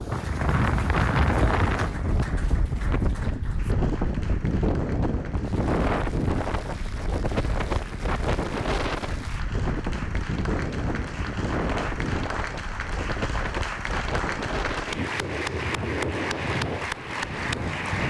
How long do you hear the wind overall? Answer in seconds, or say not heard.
18 s.